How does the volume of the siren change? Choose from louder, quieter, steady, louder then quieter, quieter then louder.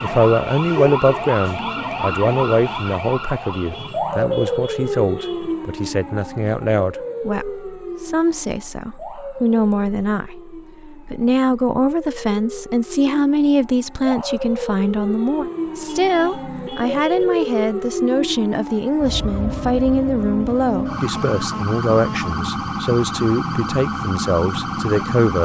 quieter then louder.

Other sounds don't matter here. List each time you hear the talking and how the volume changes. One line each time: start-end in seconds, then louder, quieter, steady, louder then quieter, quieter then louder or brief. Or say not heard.
0.0-25.3 steady.